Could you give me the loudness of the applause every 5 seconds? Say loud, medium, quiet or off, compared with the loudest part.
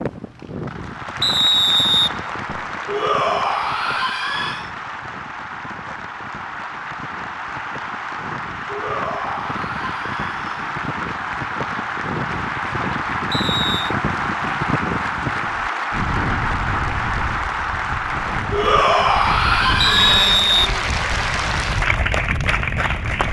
medium, medium, loud, loud, loud.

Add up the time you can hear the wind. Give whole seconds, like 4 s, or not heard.
23 s.